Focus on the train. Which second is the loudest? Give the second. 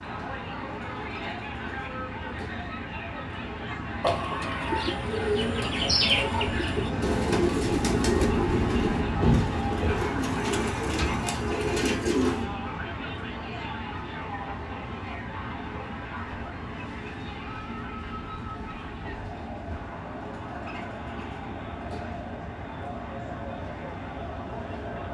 8 s.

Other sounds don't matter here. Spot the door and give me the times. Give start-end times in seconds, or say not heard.
not heard.